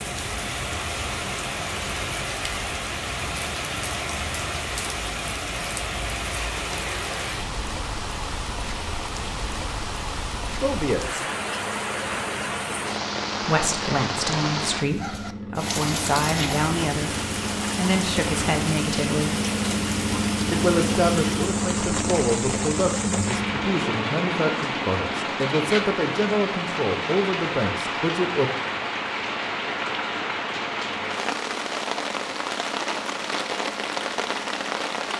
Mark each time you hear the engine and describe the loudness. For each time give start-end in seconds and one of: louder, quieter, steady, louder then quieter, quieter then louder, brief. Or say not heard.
11.2-35.1 louder then quieter.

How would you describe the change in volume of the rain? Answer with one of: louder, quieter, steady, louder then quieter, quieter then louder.
steady.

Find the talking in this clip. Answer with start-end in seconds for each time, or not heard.
10.6-11.2, 13.4-17.1, 17.8-19.4, 20.5-28.5.